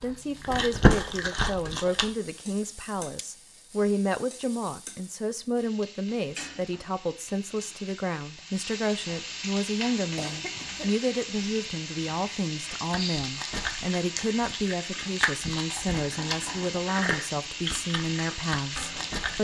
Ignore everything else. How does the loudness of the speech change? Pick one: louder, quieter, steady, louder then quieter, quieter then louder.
steady.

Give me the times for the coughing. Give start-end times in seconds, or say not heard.
10.2-10.9.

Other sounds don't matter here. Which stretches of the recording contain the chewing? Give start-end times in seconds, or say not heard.
0.0-2.1, 12.7-19.4.